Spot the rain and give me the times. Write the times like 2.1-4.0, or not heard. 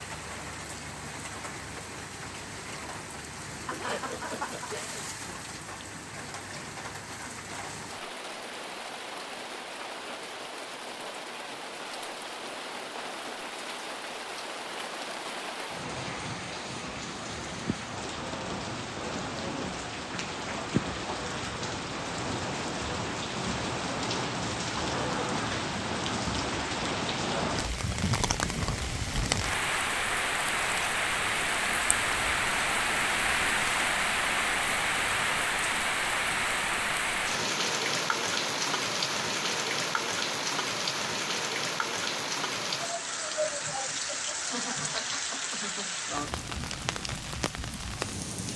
0.0-48.5.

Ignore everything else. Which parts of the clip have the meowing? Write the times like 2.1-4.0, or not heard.
not heard.